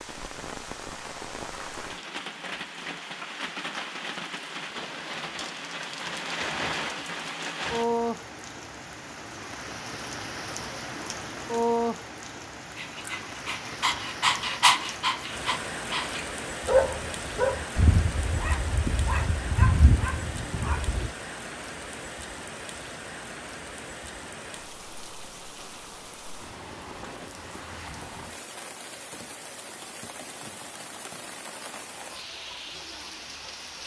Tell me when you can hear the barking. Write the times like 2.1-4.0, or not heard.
12.8-21.1.